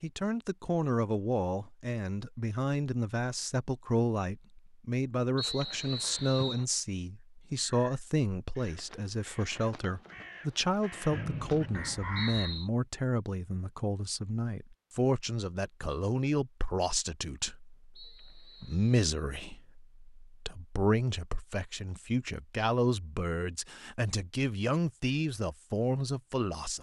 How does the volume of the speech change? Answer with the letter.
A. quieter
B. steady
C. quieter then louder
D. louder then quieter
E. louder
B.